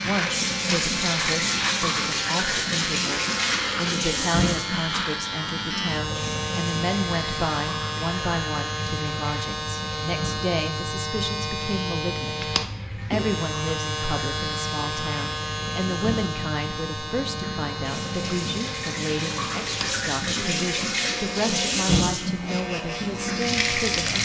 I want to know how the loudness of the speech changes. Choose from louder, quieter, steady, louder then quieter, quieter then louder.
steady.